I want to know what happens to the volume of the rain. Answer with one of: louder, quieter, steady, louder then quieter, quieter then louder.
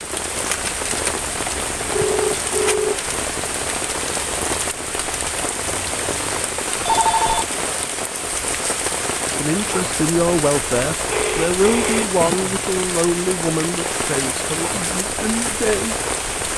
steady.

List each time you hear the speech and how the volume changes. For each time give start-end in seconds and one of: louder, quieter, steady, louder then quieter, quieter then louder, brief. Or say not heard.
9.3-15.9 quieter.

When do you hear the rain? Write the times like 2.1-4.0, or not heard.
0.0-16.5.